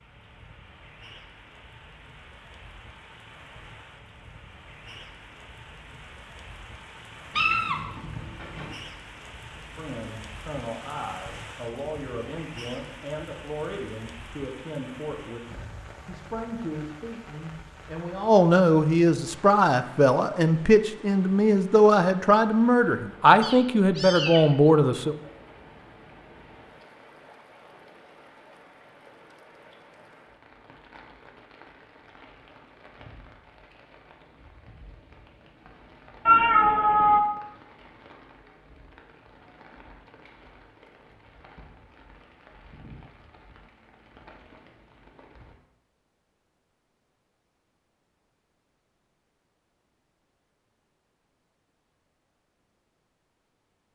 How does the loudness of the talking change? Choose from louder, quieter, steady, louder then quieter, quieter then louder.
louder.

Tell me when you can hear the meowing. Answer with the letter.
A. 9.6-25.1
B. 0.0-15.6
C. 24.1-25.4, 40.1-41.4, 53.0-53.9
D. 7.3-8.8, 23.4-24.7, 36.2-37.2
D.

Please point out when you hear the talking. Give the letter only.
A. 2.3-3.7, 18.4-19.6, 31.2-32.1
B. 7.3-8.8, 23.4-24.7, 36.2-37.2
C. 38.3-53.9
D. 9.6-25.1
D.